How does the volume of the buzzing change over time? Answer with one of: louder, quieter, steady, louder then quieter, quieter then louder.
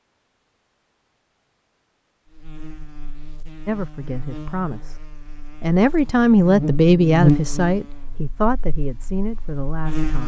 louder then quieter.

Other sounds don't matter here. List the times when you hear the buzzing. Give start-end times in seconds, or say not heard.
2.3-10.2.